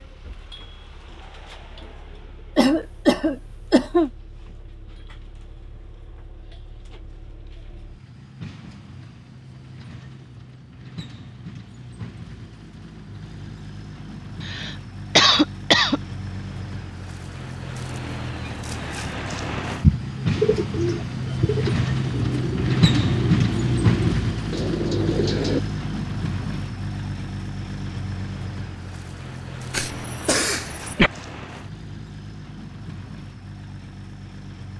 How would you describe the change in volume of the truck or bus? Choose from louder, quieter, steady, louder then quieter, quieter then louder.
louder then quieter.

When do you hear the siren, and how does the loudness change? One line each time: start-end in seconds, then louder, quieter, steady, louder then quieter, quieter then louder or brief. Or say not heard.
not heard.